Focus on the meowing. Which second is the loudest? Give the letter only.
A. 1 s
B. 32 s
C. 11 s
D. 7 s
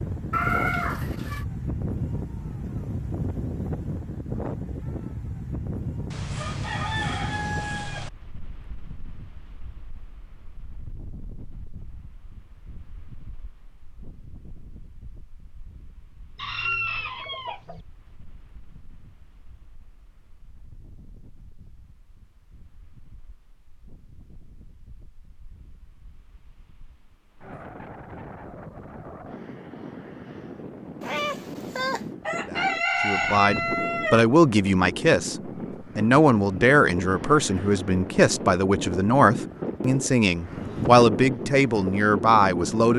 A.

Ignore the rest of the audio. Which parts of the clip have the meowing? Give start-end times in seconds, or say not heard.
0.3-1.4, 31.0-32.0.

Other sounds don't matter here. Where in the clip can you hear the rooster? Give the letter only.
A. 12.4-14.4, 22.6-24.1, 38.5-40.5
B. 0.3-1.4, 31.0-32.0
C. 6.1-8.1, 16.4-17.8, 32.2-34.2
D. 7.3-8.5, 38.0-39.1
C.